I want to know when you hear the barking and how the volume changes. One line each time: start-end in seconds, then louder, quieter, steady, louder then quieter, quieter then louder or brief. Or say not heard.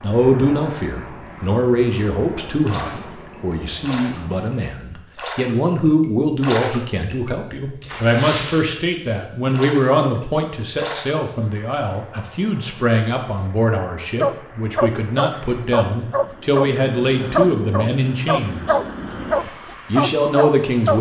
14.2-20.9 steady.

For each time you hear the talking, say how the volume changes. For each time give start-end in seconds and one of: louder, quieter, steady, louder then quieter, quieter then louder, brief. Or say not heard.
0.0-20.9 steady.